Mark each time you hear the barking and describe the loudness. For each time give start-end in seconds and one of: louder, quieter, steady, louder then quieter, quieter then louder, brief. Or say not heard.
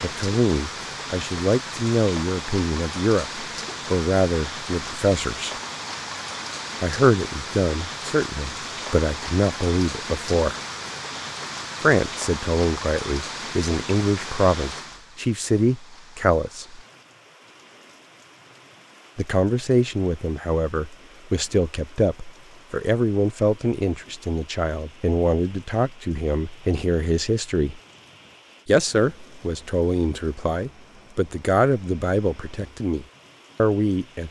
not heard.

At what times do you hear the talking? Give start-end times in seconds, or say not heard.
0.0-5.5, 6.8-10.6, 11.8-16.8, 19.1-27.8, 28.6-34.2.